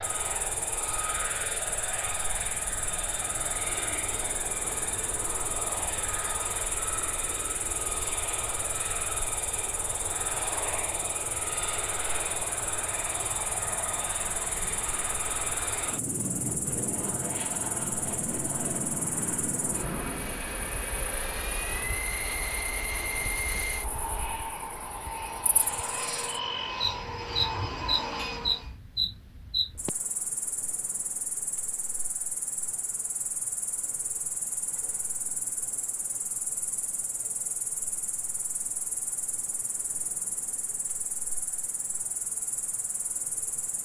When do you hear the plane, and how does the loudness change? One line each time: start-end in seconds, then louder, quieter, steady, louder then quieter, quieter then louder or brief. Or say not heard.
0.0-28.8 steady.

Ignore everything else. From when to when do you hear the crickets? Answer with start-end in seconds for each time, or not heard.
0.0-43.8.